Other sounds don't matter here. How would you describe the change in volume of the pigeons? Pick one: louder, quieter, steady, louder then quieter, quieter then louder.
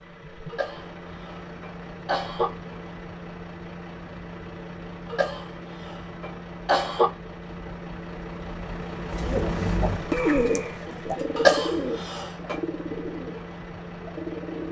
quieter.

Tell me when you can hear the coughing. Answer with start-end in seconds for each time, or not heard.
0.5-2.5, 5.1-7.1, 11.3-12.6.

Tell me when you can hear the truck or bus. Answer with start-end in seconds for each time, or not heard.
0.0-14.6.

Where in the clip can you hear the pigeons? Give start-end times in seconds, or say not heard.
9.1-14.6.